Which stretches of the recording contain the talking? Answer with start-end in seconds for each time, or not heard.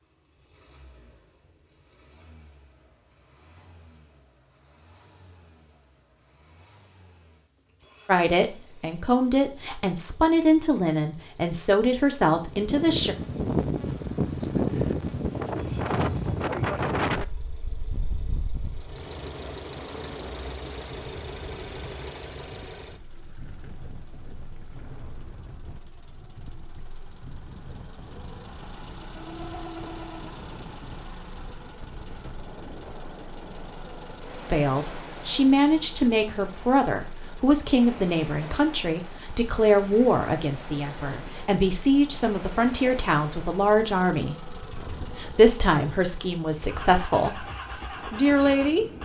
8.1-13.2, 34.5-48.9.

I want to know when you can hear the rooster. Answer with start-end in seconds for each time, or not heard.
not heard.